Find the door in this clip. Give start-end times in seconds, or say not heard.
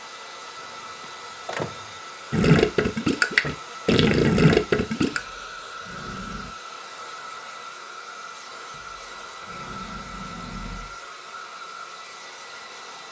1.0-1.9, 5.1-6.5, 8.7-11.0.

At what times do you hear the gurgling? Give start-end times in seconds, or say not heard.
2.3-5.2.